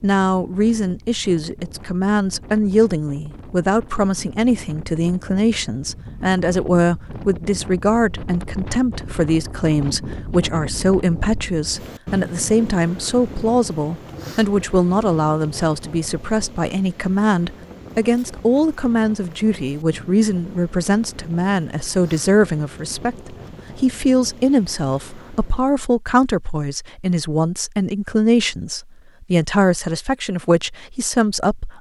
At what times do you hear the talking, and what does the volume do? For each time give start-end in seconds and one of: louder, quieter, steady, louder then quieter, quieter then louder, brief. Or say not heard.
0.0-31.7 steady.